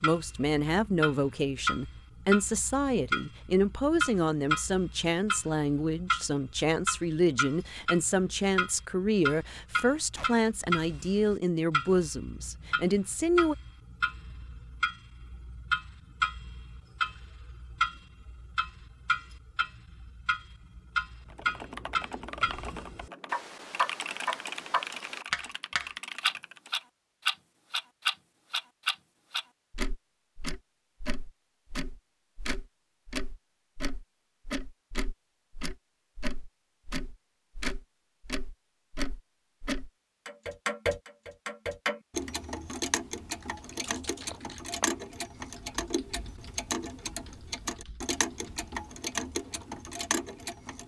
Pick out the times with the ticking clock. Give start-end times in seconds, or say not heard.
0.0-50.8.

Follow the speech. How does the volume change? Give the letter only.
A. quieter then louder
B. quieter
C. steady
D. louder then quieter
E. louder
C.